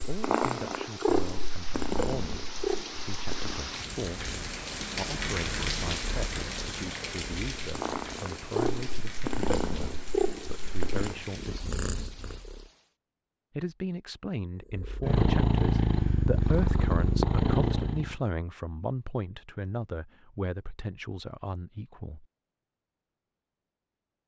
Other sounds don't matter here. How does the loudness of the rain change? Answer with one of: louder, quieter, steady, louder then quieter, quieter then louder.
louder then quieter.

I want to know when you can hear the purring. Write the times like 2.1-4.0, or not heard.
0.0-12.7, 14.8-18.1.